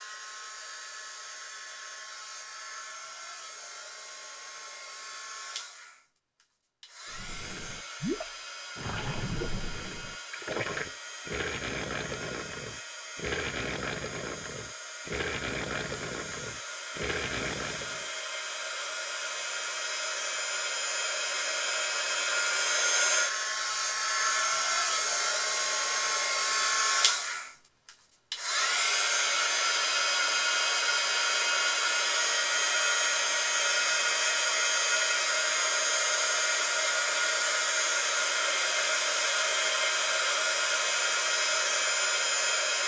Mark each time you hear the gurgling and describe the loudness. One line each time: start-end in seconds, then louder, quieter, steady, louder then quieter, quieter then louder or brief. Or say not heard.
7.1-18.1 steady.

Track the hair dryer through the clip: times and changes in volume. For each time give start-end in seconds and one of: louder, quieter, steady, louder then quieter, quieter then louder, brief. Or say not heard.
0.0-42.8 louder.